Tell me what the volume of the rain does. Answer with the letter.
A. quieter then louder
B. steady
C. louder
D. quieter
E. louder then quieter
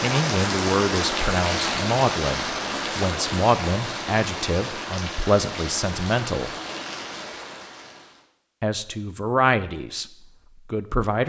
D.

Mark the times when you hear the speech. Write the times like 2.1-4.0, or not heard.
0.0-6.5, 8.6-10.1, 10.7-11.2.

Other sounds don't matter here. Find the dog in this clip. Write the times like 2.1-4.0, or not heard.
not heard.